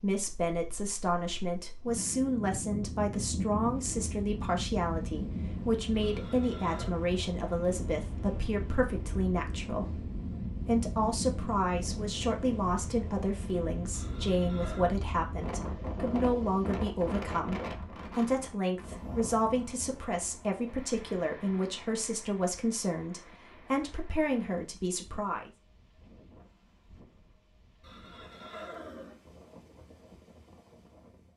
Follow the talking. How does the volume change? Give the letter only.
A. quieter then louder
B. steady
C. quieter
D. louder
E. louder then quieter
B.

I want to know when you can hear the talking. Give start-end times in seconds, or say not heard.
0.0-25.5.